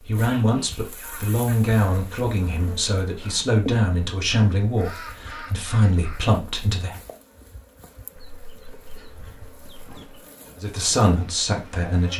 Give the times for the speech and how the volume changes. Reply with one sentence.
The speech can be heard from 0.0 to 7.0 s, at a steady volume; and briefly from 10.6 to 12.1 s.